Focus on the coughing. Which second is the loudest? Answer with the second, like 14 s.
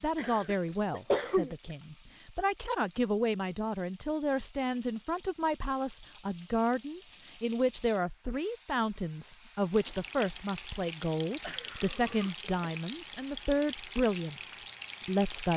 1 s.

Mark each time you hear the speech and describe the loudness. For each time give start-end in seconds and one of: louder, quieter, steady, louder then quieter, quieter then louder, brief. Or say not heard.
0.0-15.5 steady.